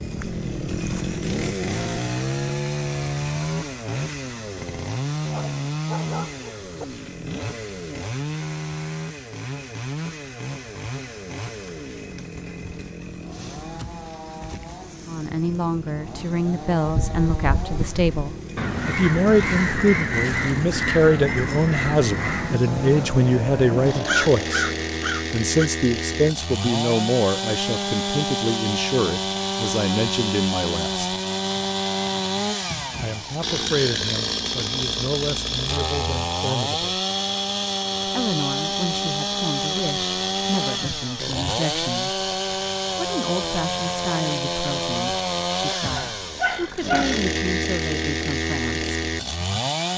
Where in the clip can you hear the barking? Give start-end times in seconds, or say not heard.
5.2-6.8, 46.0-47.2.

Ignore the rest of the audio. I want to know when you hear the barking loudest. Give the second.
47 s.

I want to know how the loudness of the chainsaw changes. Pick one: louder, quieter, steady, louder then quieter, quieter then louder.
quieter then louder.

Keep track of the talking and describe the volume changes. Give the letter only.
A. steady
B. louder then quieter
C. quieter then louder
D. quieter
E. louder
D.